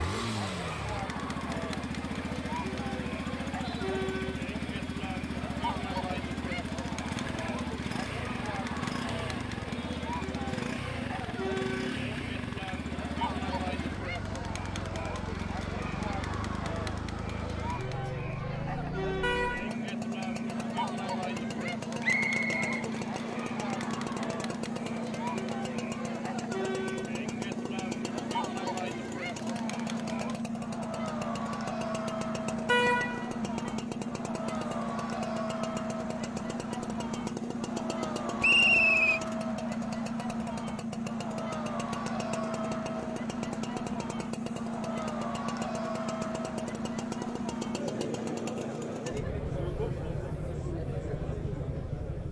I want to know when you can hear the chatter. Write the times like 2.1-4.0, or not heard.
0.0-52.2.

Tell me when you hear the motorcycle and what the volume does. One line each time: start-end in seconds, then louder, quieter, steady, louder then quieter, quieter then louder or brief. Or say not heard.
0.0-52.2 steady.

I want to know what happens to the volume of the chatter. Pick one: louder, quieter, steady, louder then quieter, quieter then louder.
steady.